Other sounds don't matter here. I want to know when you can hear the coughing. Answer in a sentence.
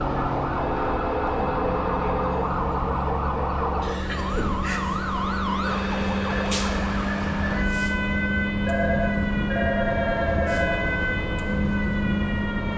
You can't hear the coughing here.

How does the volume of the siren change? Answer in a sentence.
The loudness of the siren stays about the same.